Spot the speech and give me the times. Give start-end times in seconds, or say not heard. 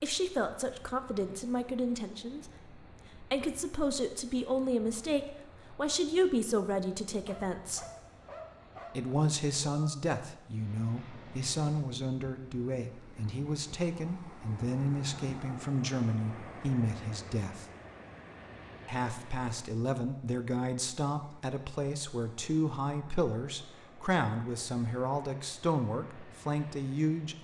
0.0-7.8, 8.9-17.6, 18.9-27.3.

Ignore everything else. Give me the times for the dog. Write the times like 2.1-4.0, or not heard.
7.0-9.2.